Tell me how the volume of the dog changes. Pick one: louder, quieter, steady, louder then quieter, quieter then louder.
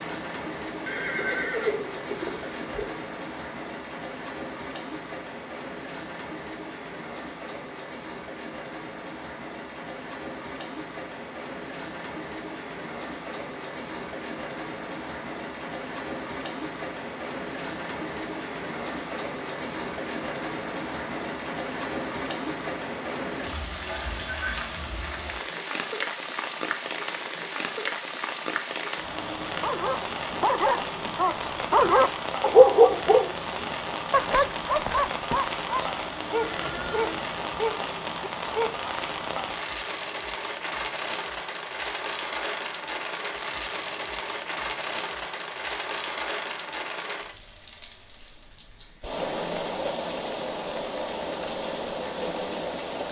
louder then quieter.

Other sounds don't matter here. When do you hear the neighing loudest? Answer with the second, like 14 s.
2 s.